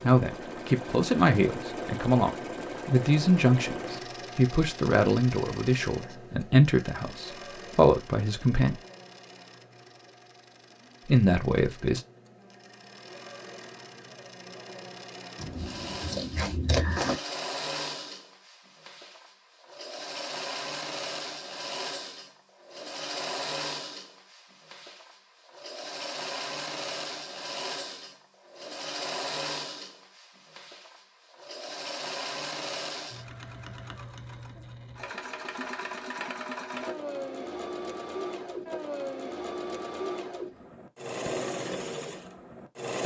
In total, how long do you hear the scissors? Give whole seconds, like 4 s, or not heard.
2 s.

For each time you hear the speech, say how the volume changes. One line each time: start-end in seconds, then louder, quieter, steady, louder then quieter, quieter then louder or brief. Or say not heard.
0.0-8.8 steady
11.1-12.0 brief.